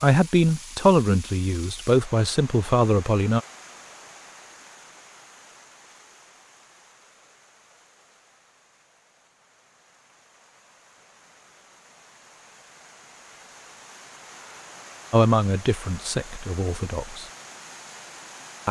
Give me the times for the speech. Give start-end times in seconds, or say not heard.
0.0-3.4, 15.1-17.2.